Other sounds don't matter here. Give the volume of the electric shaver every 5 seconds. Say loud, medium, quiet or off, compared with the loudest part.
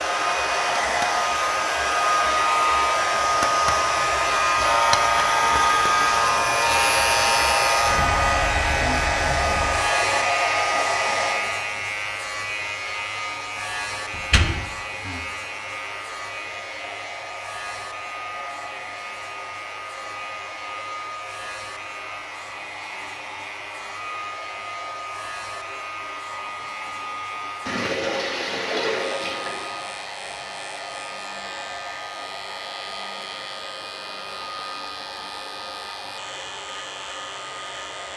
loud, loud, medium, quiet, quiet, quiet, quiet, quiet.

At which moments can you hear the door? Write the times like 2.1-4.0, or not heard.
14.2-15.2.